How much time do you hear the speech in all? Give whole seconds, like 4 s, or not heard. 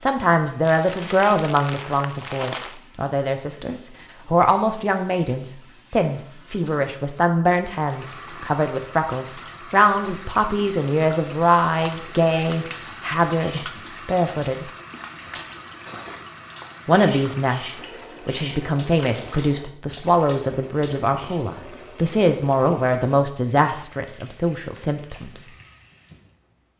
23 s.